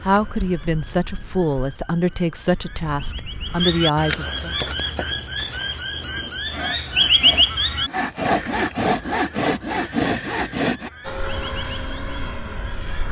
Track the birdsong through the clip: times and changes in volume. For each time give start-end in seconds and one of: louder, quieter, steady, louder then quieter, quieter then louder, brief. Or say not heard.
0.0-13.0 louder then quieter.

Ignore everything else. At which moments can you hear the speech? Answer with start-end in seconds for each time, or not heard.
0.0-4.5.